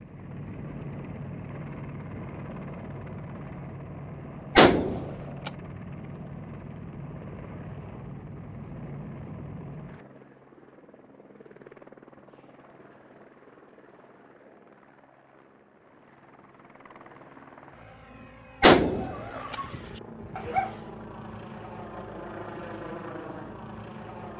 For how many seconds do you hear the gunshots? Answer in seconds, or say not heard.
2 s.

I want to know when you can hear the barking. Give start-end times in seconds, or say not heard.
18.9-20.8.